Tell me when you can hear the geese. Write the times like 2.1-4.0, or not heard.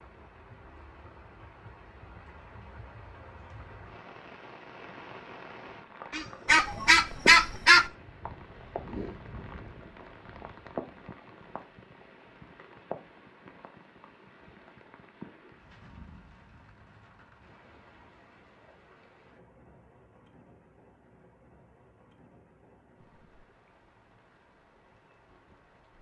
6.1-7.8.